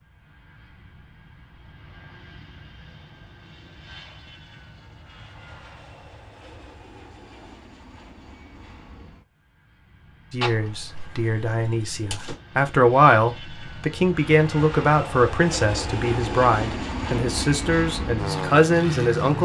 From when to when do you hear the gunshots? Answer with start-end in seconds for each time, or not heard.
10.4-12.3.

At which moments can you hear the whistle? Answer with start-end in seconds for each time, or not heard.
not heard.